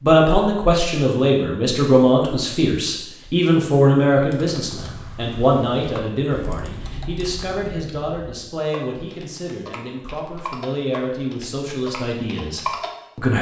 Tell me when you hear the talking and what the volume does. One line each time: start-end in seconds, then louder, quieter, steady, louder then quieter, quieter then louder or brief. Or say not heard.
0.0-13.3 quieter.